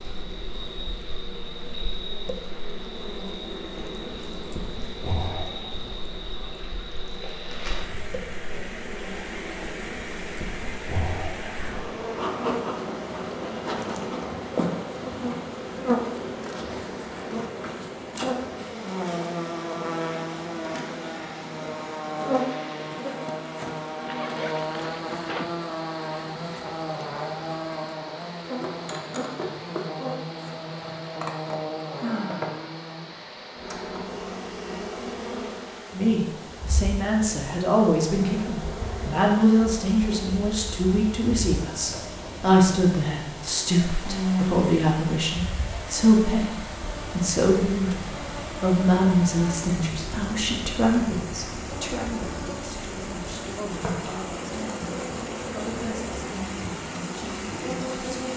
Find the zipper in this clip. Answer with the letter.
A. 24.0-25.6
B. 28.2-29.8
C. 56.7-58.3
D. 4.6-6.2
A.